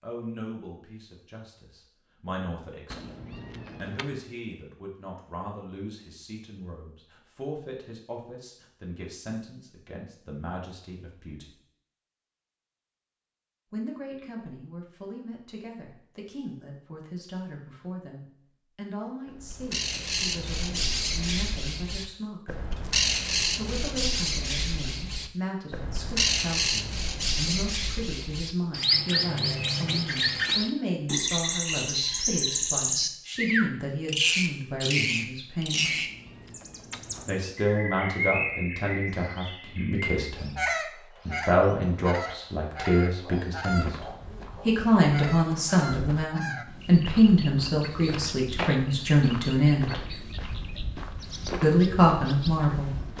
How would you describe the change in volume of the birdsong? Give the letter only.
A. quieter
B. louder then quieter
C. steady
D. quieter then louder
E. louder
A.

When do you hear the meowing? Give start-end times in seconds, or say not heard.
2.9-4.2, 35.8-37.5.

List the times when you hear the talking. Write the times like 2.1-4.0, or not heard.
0.0-11.6, 13.7-22.5, 23.4-36.0, 37.2-50.0, 51.6-53.1.